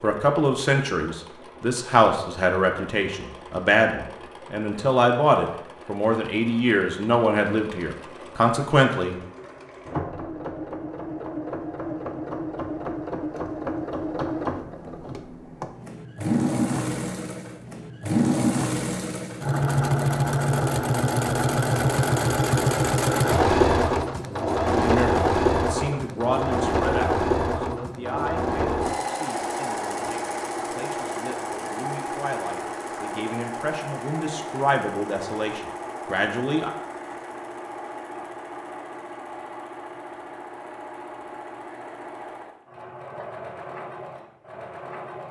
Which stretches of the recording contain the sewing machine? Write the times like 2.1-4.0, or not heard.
0.0-45.2.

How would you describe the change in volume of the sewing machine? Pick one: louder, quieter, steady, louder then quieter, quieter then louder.
louder then quieter.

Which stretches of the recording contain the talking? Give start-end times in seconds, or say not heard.
0.0-9.2, 24.7-36.7.